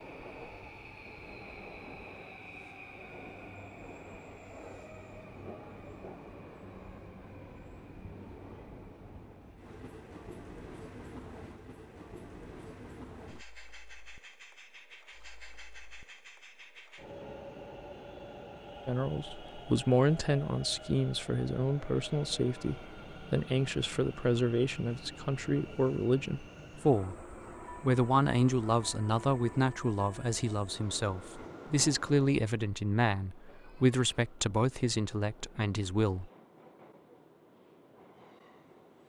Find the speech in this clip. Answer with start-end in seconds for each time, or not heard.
18.9-36.3.